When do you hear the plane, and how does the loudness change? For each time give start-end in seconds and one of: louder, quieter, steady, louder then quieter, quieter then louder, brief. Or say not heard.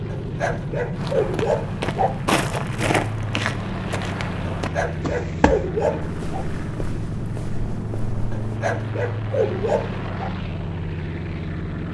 0.0-11.9 steady.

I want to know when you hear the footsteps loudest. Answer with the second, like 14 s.
2 s.